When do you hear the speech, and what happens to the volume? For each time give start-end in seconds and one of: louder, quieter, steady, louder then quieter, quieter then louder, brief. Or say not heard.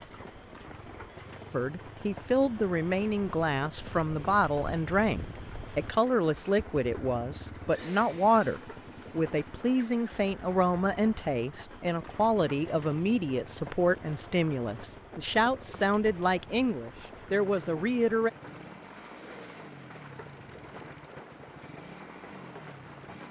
1.5-18.3 steady.